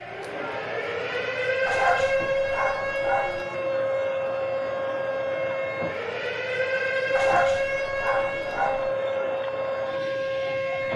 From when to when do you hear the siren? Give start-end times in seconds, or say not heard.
0.0-10.9.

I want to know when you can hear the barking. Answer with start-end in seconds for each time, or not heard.
1.6-3.4, 7.1-8.9.